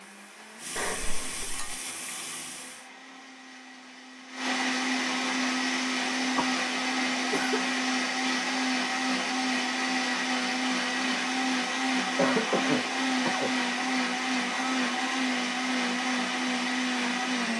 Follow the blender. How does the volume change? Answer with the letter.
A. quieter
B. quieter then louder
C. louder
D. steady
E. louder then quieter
C.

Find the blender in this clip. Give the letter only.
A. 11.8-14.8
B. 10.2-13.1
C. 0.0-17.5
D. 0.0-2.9
C.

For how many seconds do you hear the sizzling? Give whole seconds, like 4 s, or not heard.
3 s.